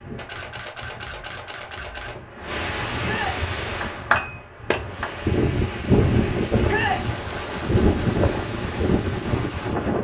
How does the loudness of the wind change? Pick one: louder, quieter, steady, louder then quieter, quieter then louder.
louder.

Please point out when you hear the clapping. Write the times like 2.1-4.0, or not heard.
3.8-5.1.